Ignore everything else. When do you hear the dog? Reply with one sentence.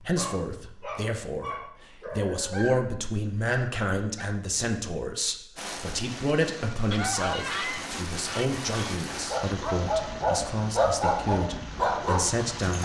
You can hear the dog from 0.0 to 2.7 s and from 9.1 to 12.8 s.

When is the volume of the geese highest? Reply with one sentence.
The volume of the geese peaks at 7 seconds.